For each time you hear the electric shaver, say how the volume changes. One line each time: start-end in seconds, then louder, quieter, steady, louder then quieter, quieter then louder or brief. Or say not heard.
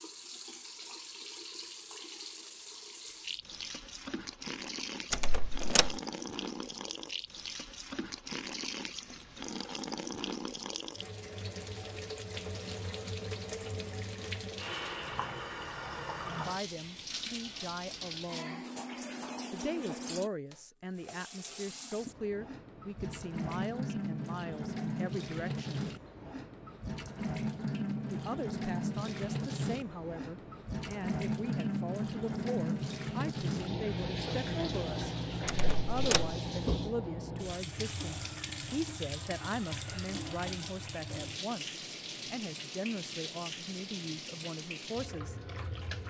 not heard.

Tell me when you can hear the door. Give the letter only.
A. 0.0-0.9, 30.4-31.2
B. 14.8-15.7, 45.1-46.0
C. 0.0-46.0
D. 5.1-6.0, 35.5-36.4
D.